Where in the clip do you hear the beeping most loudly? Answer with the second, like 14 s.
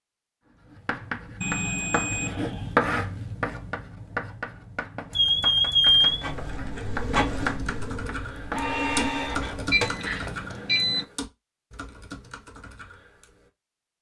6 s.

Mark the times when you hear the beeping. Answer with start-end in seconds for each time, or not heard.
1.4-2.8, 5.1-6.5, 9.7-11.1.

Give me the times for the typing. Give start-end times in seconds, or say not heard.
5.8-13.5.